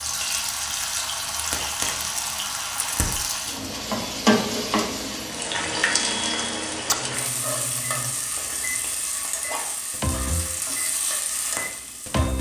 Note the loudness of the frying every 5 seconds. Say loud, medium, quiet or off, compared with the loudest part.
loud, loud, medium.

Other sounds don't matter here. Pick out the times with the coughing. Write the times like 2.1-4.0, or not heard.
8.3-9.7.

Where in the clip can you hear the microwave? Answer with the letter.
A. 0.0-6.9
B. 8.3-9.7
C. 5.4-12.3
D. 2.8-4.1
C.